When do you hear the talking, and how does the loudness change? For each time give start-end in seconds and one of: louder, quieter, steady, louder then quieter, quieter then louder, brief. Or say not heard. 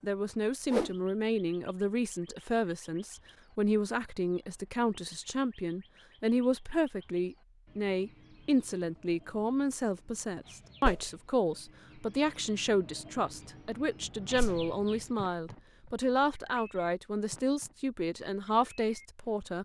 0.0-19.6 steady.